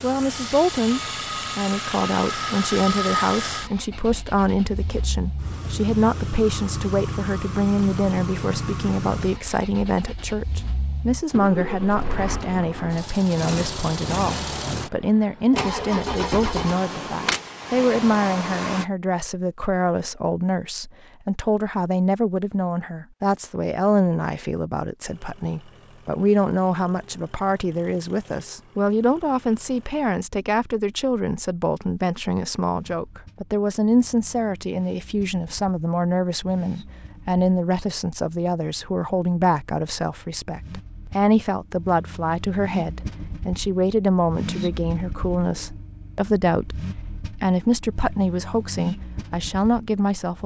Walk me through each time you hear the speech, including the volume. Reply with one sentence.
You can hear the speech from 0.0 to 50.4 s, at a steady volume.